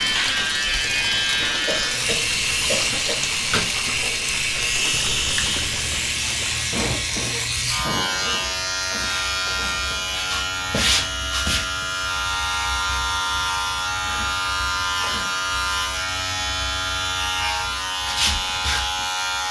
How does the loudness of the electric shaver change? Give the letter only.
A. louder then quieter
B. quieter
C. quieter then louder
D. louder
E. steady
E.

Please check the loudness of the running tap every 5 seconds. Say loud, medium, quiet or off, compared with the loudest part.
loud, loud, off, off.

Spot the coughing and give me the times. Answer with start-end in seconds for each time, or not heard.
1.6-3.1, 6.7-9.1, 14.1-15.5.